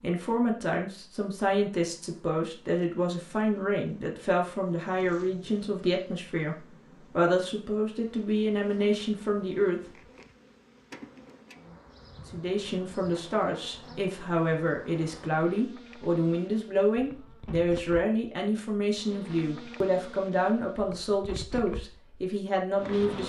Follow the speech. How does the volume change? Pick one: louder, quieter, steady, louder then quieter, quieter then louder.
steady.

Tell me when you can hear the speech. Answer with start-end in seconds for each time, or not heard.
0.0-9.8, 12.3-23.2.